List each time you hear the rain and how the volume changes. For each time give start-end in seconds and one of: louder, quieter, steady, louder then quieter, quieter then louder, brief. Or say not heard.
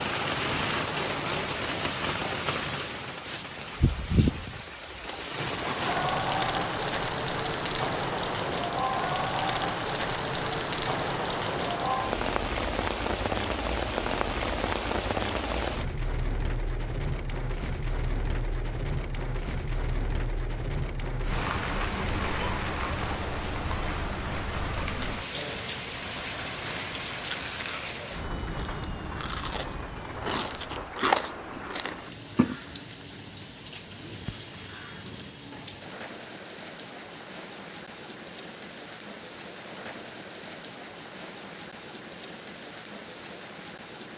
0.0-44.1 quieter.